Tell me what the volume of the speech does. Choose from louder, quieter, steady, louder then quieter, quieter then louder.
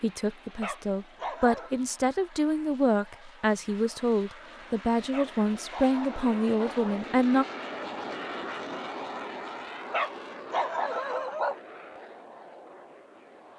steady.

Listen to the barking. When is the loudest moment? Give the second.
11 s.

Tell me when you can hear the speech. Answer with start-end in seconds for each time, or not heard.
0.0-7.5.